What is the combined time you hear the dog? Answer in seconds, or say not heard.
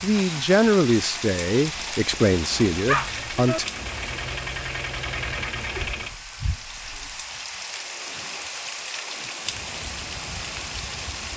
2 s.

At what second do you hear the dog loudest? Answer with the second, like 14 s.
3 s.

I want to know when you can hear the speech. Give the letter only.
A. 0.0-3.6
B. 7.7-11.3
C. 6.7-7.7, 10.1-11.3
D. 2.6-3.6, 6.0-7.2
A.